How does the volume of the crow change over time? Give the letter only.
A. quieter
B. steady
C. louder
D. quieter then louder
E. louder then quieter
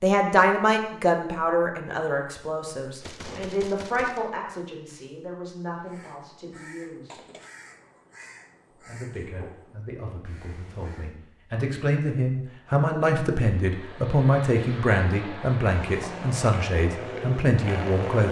B.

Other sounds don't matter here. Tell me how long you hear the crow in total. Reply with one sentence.
The crow can be heard for 5 seconds in total.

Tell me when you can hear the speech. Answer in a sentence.
The speech can be heard from 0.0 to 7.2 s and from 8.8 to 18.2 s.